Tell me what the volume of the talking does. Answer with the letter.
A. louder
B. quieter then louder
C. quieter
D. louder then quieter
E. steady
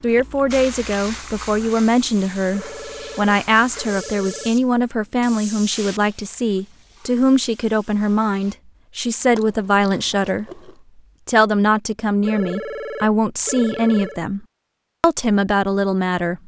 E.